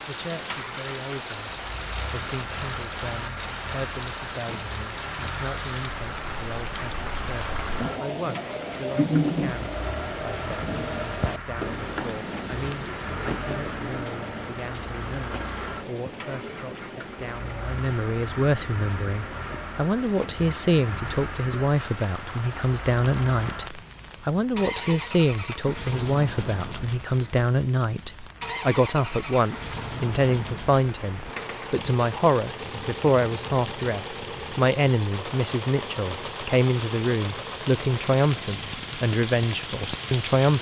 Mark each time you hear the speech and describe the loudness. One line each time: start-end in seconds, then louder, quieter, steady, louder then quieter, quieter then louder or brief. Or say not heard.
0.1-40.5 louder.